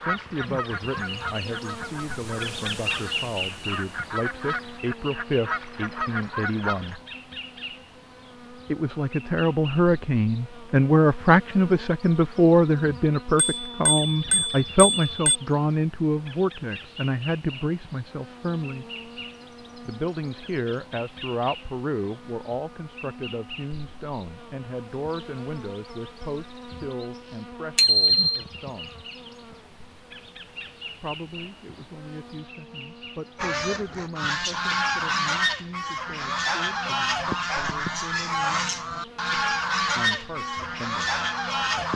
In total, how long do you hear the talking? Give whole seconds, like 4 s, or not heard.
36 s.